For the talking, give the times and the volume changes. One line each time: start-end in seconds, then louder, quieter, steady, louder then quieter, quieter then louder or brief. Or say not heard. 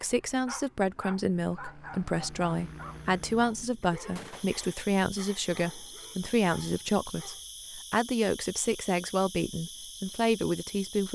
0.0-11.1 steady.